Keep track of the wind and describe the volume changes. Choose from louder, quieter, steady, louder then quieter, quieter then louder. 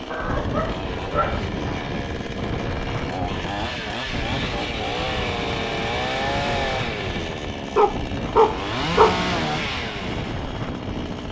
steady.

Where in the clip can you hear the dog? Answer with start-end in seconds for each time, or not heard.
0.1-1.4, 7.8-9.2.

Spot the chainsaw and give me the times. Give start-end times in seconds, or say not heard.
0.0-11.2.